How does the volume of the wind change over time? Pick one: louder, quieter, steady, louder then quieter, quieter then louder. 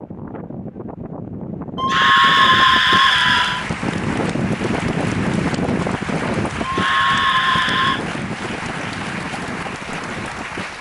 louder then quieter.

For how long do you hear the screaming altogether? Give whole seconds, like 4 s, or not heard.
3 s.